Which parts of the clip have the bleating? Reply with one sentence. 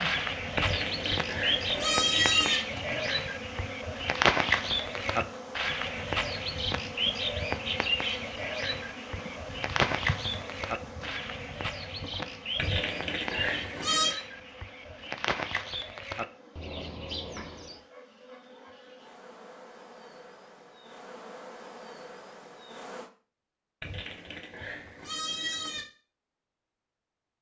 You can hear the bleating from 0.6 to 2.6 s, from 12.6 to 14.2 s and from 23.8 to 25.9 s.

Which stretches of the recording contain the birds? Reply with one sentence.
You can hear the birds from 0.0 to 17.8 s.